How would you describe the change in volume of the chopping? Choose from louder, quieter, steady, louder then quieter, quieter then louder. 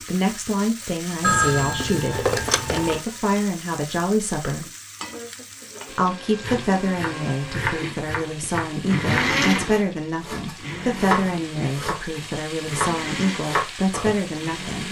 steady.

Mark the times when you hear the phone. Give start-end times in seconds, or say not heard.
1.2-3.0.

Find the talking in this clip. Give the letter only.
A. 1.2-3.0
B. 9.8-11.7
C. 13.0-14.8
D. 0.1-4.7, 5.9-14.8
D.